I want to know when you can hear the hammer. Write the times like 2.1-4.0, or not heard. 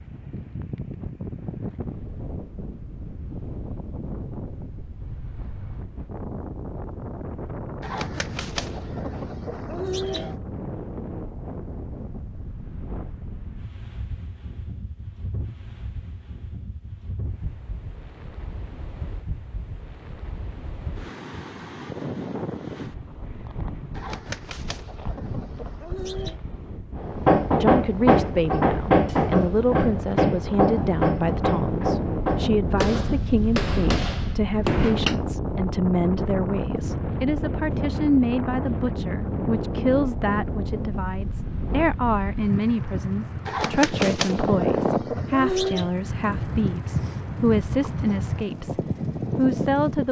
26.9-35.2.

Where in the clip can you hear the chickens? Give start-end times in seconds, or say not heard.
7.8-10.3, 23.9-26.4, 43.5-45.9.